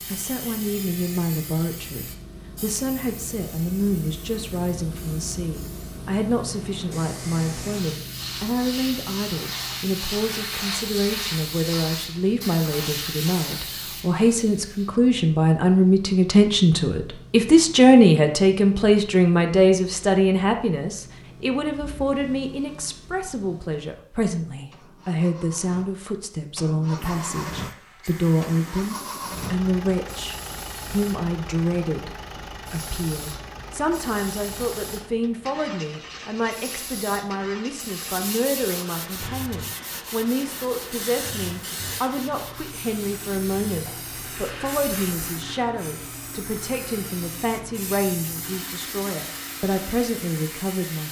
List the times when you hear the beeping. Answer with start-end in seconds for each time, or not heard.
not heard.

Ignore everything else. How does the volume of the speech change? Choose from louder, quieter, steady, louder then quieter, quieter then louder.
louder then quieter.